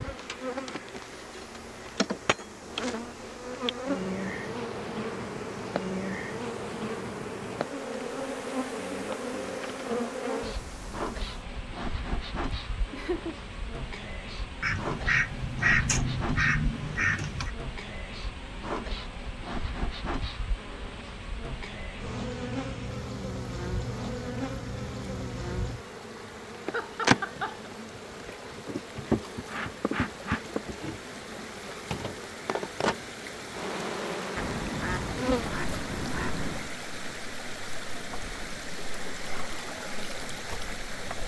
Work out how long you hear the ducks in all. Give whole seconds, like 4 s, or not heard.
5 s.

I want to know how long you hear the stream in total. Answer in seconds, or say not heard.
41 s.